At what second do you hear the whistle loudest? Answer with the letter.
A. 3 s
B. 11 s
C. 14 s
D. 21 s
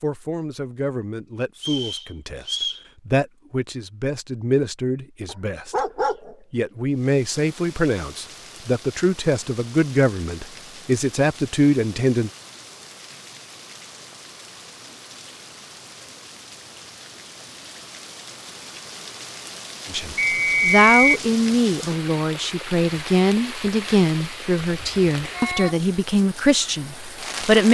D.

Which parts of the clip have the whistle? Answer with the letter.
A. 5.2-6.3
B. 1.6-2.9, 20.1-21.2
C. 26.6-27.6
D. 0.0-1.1
B.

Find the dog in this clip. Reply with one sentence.
The dog can be heard from 5.2 to 6.3 s.